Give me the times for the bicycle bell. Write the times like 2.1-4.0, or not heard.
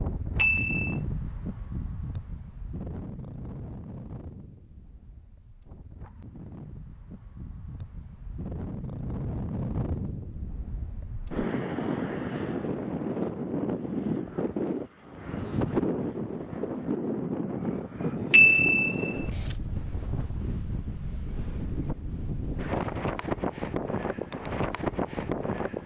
0.3-0.9, 18.3-19.1.